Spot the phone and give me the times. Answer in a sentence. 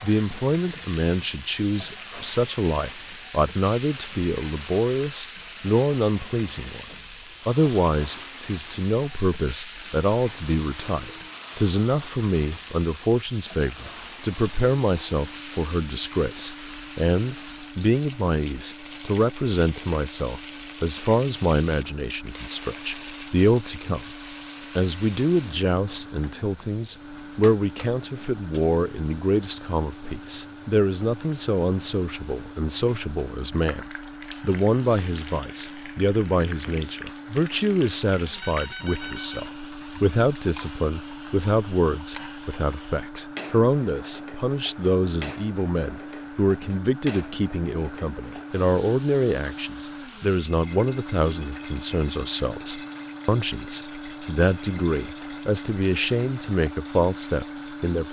You can hear the phone from 38.2 to 39.6 s.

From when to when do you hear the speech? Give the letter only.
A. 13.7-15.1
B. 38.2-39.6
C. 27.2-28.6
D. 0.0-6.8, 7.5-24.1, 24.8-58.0
D.